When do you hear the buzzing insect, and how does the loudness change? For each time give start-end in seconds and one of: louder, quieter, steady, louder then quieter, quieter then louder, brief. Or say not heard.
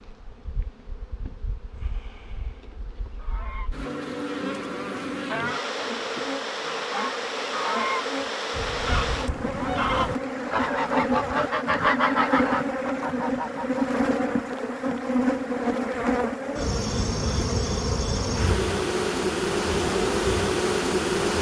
0.0-21.3 louder.